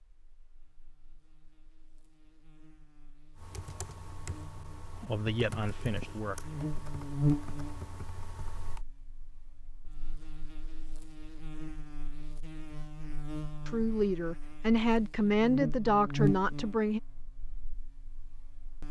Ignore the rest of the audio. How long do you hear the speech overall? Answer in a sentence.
The speech can be heard for 5 seconds in total.